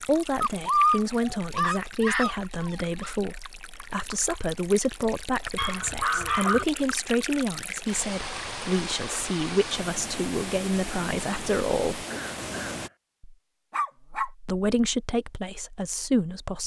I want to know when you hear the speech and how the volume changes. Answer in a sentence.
The speech can be heard from 0.0 to 12.1 s, at a steady volume; and briefly from 14.4 to 16.6 s.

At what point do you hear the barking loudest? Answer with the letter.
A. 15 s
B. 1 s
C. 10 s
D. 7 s
B.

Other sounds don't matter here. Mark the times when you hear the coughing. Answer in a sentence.
The coughing can be heard from 12.1 to 12.9 s.